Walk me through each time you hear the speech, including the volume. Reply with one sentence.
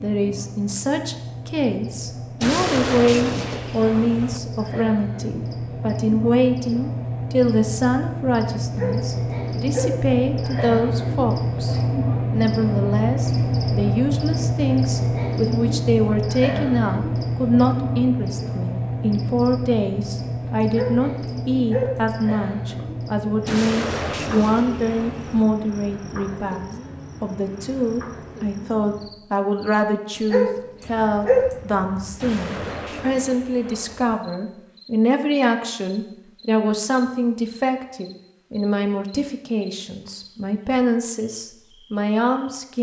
You can hear the speech from 0.0 to 42.7 s, at a steady volume.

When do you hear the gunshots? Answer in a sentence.
You can hear the gunshots from 2.4 to 4.4 s, from 23.4 to 25.4 s and from 32.2 to 34.2 s.